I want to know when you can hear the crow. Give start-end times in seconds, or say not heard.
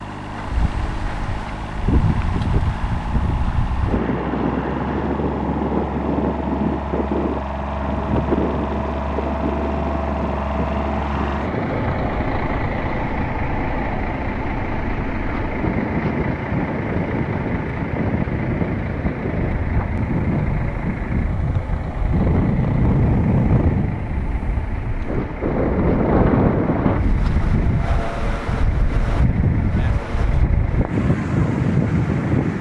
not heard.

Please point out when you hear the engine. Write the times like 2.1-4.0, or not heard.
0.0-32.5.